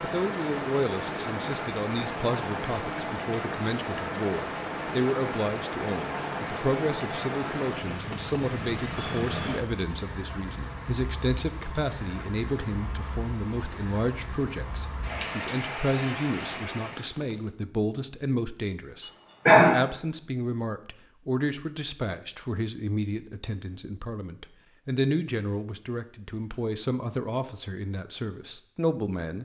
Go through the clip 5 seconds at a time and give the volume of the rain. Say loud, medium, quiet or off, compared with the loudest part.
loud, loud, medium, loud, off, off.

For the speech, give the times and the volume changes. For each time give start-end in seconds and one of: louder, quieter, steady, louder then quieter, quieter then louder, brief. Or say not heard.
0.0-29.3 steady.